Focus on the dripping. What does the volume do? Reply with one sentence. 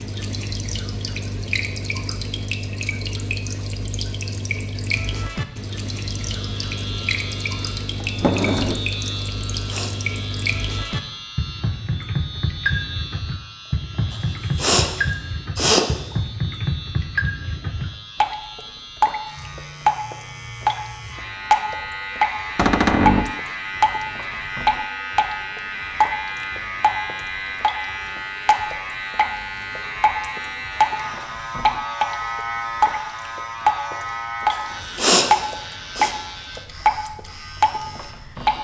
The loudness of the dripping goes up.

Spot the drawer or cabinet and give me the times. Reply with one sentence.
You can hear the drawer or cabinet from 8.0 to 8.8 s and from 22.6 to 23.4 s.